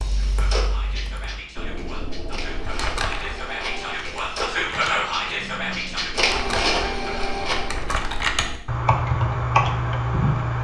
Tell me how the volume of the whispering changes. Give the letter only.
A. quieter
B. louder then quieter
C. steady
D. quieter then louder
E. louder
B.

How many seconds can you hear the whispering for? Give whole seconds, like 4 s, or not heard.
7 s.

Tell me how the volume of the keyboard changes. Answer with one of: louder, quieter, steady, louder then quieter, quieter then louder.
louder.